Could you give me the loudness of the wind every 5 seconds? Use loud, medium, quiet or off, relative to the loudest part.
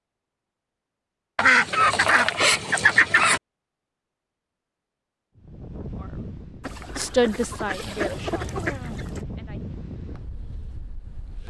off, loud, medium.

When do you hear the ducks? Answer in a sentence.
The ducks can be heard from 1.4 to 3.4 s and from 6.6 to 9.2 s.